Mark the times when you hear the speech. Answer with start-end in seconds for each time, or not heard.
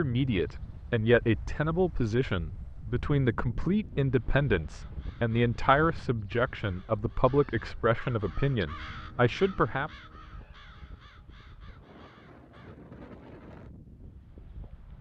0.0-9.9.